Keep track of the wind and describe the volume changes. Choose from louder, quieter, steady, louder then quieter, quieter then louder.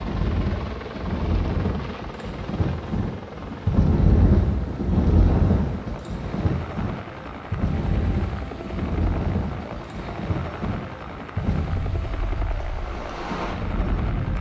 louder then quieter.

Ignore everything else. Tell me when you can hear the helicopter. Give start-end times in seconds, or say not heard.
0.0-14.3.